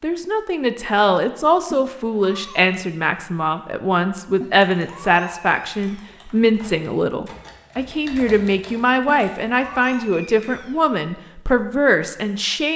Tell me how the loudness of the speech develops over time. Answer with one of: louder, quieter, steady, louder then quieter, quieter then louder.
steady.